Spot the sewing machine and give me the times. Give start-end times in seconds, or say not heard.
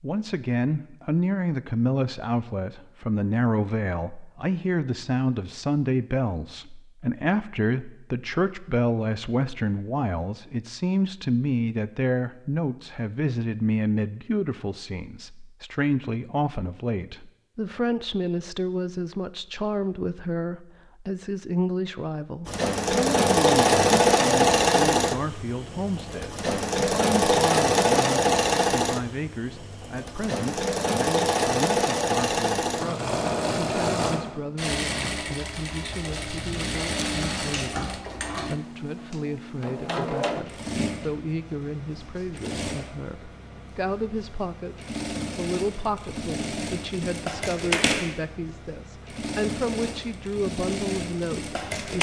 22.4-51.9.